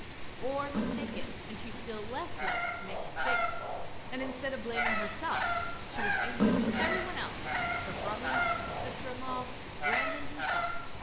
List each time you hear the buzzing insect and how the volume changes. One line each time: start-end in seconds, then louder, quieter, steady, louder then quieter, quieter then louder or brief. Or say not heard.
not heard.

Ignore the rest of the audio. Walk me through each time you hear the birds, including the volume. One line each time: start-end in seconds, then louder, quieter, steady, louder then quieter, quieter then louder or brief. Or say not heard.
2.2-10.9 steady.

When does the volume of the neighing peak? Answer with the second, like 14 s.
7 s.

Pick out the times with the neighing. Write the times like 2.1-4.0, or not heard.
0.7-1.9, 6.3-7.2.